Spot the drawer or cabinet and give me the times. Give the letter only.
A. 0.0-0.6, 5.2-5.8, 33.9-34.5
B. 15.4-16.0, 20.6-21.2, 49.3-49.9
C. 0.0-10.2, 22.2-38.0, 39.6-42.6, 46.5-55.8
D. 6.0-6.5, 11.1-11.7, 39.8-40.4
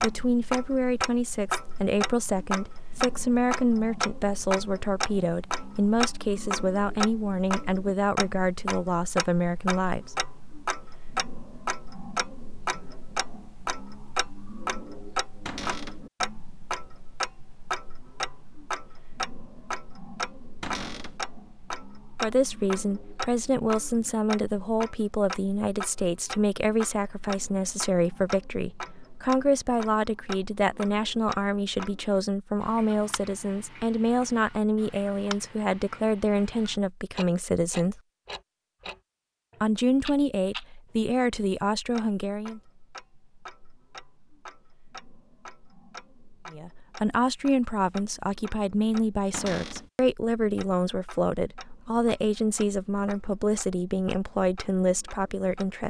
B.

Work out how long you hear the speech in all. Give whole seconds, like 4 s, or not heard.
38 s.